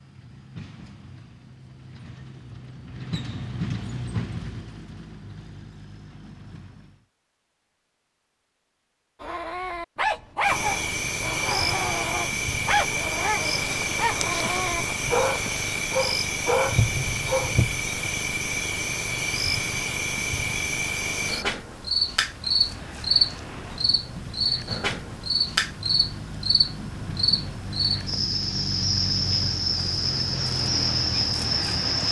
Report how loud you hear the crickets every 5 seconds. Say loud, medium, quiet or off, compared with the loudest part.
off, off, loud, loud, loud, loud, loud.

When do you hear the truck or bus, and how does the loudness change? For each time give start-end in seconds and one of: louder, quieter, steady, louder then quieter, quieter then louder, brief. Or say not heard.
0.0-7.0 louder then quieter
22.2-32.0 louder.